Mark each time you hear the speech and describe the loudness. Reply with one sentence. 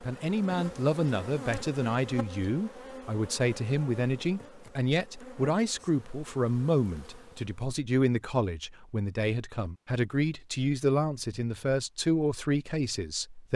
You can hear the speech from 0.0 to 13.5 s, at a steady volume.